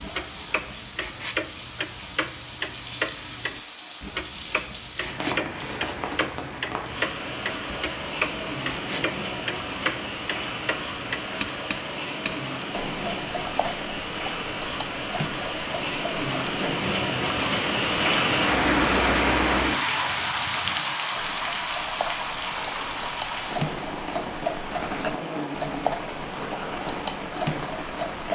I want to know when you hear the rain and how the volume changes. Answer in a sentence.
You can hear the rain from 0.0 to 28.3 s, getting louder then quieter.